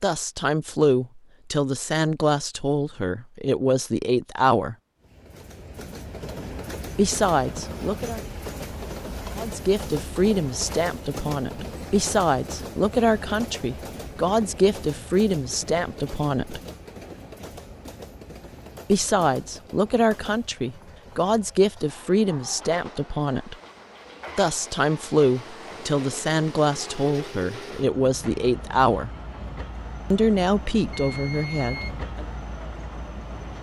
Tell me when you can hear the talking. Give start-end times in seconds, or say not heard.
0.0-4.8, 7.0-8.2, 9.3-16.6, 18.9-23.6, 24.4-29.1, 30.1-32.2.